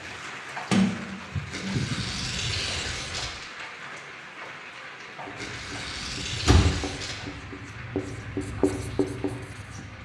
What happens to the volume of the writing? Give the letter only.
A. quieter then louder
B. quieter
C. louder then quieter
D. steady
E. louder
E.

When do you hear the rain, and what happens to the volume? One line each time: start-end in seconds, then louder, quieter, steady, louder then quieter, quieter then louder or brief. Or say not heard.
0.0-10.0 quieter.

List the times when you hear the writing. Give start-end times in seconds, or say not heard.
5.2-10.0.